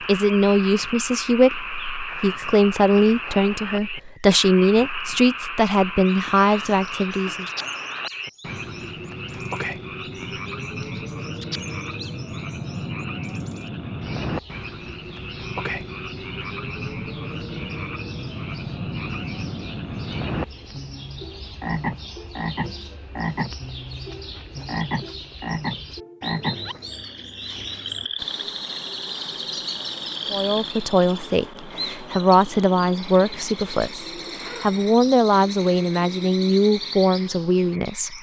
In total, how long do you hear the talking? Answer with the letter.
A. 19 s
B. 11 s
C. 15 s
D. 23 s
C.